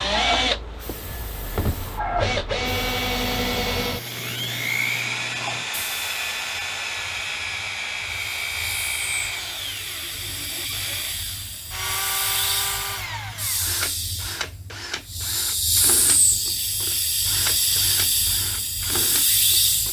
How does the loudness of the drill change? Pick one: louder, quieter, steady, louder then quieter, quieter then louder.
quieter.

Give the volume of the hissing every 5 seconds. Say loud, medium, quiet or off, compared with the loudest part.
medium, quiet, medium, loud.